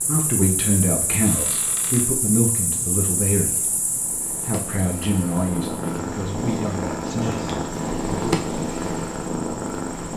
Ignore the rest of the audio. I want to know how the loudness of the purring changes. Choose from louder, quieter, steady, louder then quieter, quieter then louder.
louder.